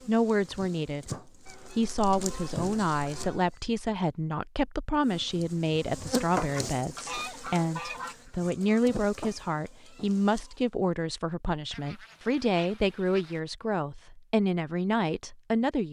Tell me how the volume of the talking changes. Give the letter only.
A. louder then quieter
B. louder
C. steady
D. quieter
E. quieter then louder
C.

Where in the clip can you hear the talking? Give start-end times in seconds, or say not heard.
0.1-15.8.